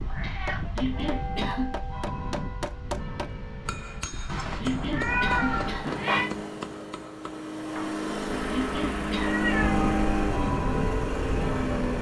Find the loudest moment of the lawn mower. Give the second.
10 s.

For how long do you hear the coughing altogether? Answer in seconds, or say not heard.
3 s.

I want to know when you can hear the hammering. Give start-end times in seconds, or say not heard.
0.5-8.0.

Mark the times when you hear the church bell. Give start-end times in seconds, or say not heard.
0.0-5.8, 9.4-11.9.